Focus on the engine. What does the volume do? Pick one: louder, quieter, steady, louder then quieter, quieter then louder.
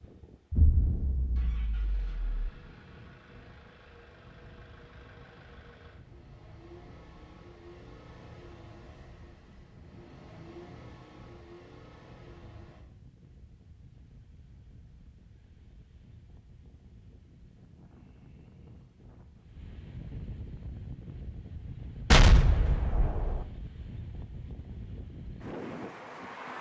louder.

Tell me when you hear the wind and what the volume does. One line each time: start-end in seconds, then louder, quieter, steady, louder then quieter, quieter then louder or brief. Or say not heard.
0.0-26.5 louder.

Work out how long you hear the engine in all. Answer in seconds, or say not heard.
13 s.